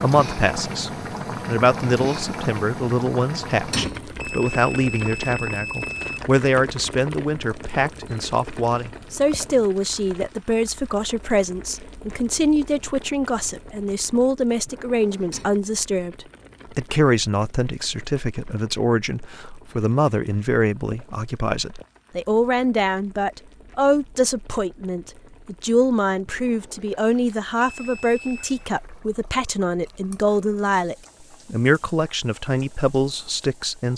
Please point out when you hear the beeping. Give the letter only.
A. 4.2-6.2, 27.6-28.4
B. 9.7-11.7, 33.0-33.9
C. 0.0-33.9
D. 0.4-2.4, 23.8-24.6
A.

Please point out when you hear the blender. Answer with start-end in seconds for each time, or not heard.
not heard.